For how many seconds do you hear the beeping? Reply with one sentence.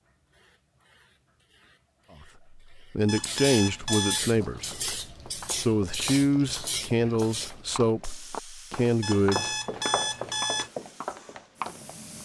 The beeping can be heard for 3 seconds in total.